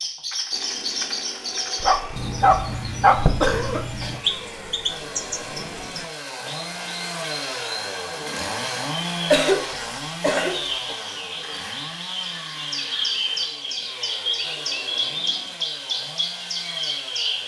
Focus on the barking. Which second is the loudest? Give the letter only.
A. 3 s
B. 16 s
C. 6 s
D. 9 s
A.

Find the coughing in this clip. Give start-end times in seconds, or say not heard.
3.1-4.1, 9.3-10.9.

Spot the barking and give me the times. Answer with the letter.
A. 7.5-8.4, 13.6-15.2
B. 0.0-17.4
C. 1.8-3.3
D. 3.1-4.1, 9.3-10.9
C.